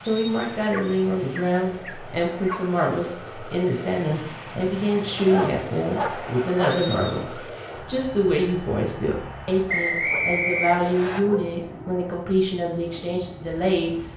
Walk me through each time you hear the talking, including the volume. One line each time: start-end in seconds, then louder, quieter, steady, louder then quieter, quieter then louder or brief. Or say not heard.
0.1-13.9 steady.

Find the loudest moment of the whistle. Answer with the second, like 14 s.
10 s.